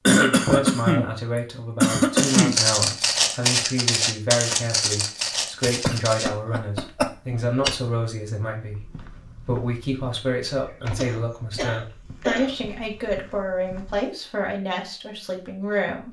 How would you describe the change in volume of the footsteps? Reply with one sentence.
The loudness of the footsteps goes down.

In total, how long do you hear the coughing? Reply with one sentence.
You can hear the coughing for 5 seconds altogether.